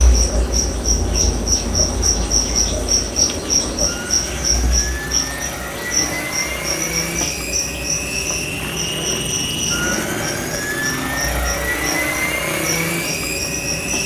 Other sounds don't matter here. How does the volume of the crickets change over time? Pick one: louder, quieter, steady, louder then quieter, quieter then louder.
quieter.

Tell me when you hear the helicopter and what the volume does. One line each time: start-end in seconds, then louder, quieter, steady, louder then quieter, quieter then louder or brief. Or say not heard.
0.0-14.0 louder.